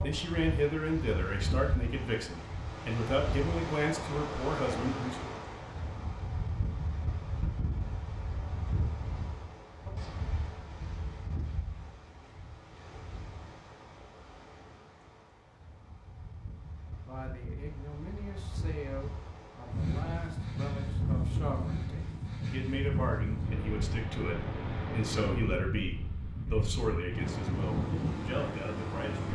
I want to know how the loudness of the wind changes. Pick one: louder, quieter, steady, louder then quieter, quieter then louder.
quieter then louder.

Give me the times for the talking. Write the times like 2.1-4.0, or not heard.
0.0-5.3, 17.0-29.3.